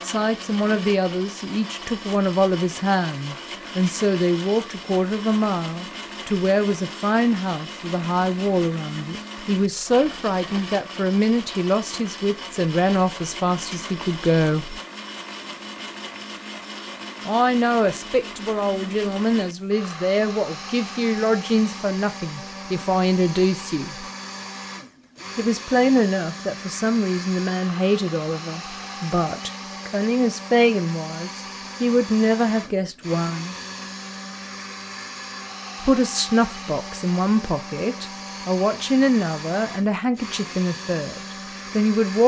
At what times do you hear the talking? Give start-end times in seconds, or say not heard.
0.0-14.8, 17.2-24.1, 25.4-33.5, 35.8-42.2.